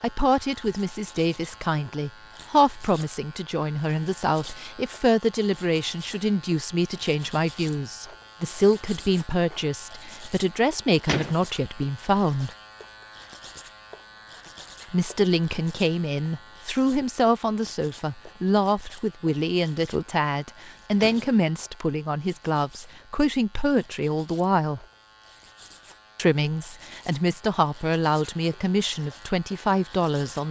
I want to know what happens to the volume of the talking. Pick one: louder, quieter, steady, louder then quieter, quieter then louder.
steady.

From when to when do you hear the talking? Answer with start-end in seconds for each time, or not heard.
0.0-12.5, 14.9-24.9, 26.1-30.4.